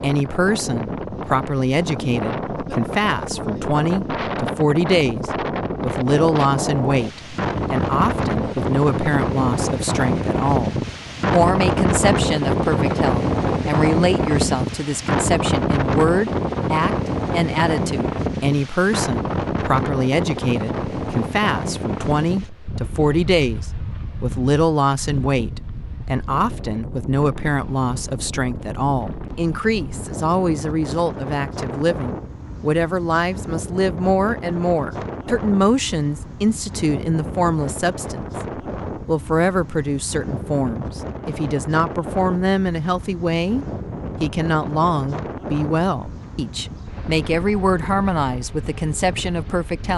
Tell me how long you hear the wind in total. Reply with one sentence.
You can hear the wind for 50 seconds altogether.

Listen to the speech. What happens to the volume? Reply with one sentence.
The volume of the speech stays about the same.